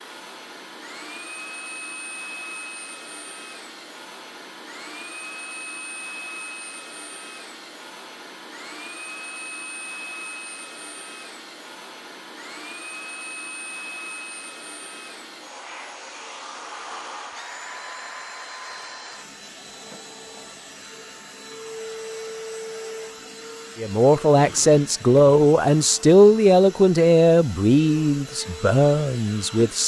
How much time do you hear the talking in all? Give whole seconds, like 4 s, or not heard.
6 s.